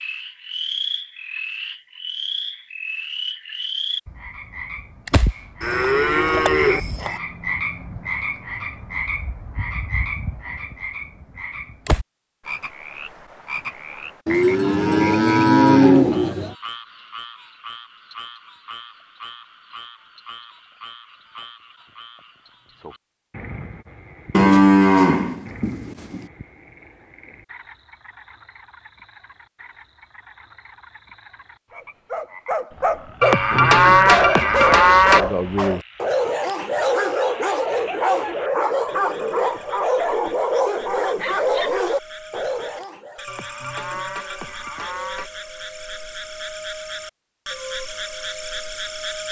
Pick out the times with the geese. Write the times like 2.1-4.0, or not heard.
not heard.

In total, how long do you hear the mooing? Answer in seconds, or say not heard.
10 s.